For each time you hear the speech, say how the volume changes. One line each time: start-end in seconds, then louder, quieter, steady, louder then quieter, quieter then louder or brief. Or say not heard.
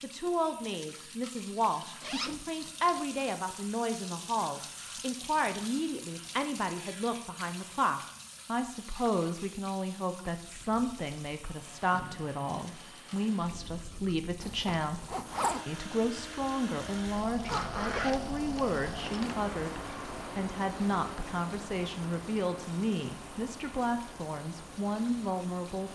0.0-25.8 steady.